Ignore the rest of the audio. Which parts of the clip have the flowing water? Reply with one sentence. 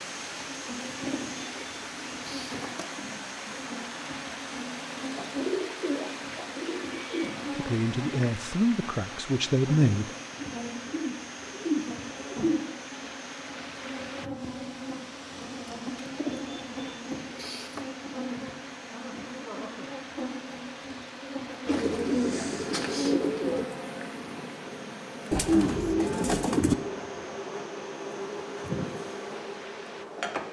The flowing water can be heard from 0.0 to 30.4 s.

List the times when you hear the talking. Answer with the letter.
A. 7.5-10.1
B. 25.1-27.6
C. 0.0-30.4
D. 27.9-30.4
A.